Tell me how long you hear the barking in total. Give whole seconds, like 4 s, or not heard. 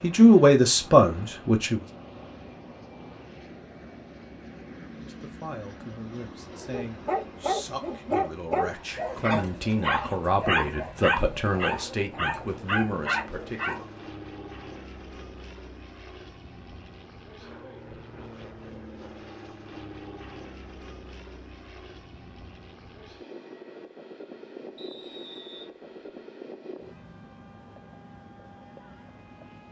7 s.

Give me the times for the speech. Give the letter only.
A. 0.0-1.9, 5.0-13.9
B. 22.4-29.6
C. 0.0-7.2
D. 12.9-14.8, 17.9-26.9
A.